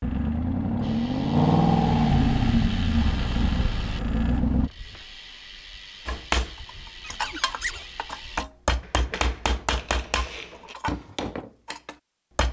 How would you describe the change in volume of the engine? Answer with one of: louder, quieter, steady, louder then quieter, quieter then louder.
louder then quieter.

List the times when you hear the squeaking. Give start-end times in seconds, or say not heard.
7.0-7.9.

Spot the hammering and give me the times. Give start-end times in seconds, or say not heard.
6.0-12.4.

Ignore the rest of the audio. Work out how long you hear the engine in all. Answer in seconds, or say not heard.
5 s.